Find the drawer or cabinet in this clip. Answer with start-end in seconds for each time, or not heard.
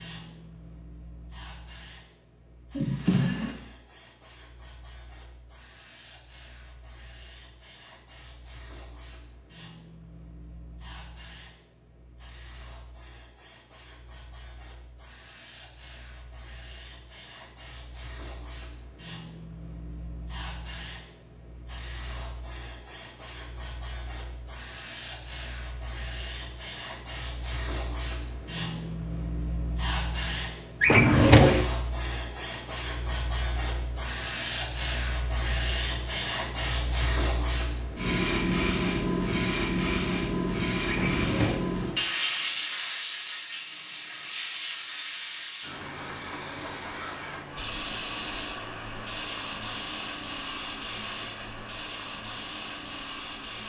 2.8-3.5, 30.8-31.6, 40.9-41.6.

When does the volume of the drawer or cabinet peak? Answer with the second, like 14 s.
31 s.